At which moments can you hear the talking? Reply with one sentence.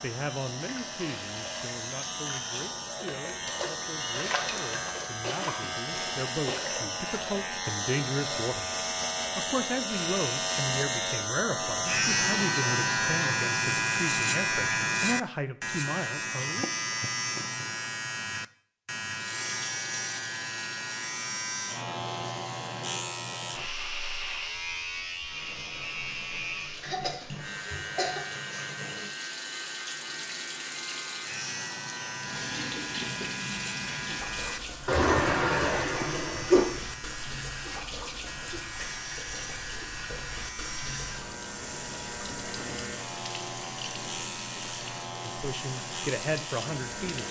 The talking can be heard from 0.0 to 16.7 s and from 45.2 to 47.2 s.